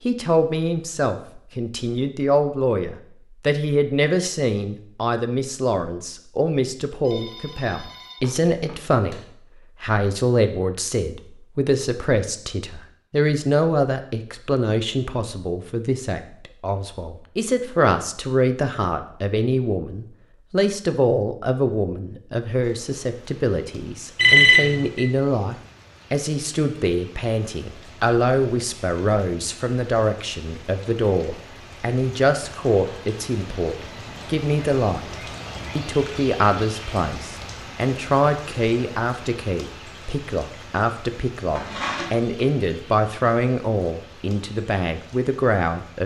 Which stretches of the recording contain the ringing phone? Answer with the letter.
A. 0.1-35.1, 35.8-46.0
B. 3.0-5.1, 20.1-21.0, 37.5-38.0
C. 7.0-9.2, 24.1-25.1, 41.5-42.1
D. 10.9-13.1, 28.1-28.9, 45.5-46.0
C.